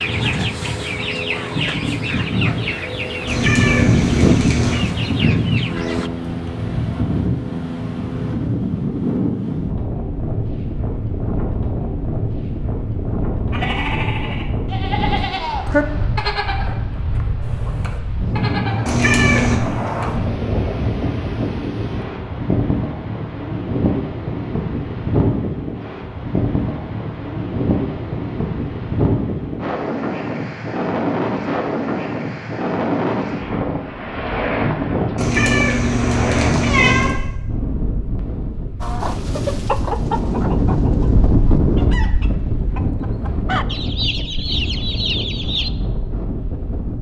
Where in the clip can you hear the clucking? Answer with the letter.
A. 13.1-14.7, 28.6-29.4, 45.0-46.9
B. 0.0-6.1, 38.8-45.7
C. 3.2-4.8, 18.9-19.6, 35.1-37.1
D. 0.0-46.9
B.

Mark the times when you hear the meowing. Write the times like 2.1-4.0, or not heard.
3.2-4.8, 18.9-19.6, 35.1-37.1.